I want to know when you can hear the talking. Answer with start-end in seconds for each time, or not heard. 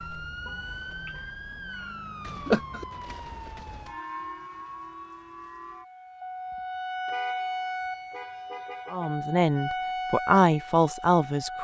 8.9-11.5.